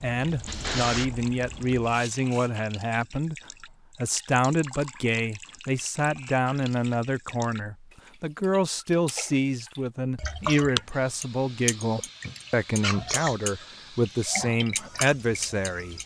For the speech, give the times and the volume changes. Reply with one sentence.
The speech can be heard from 0.0 to 16.0 s, at a steady volume.